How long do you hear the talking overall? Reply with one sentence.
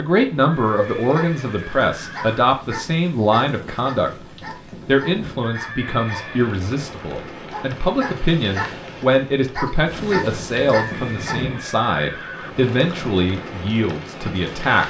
You can hear the talking for 14 seconds altogether.